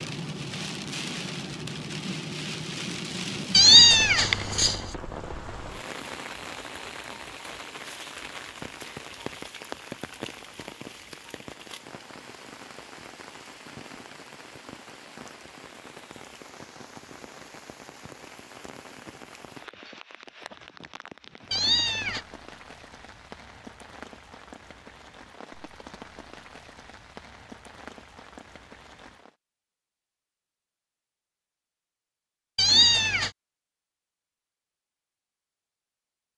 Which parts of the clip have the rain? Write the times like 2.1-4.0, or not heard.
0.0-29.4.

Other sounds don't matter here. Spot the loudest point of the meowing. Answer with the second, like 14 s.
4 s.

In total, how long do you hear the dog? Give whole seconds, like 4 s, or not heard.
not heard.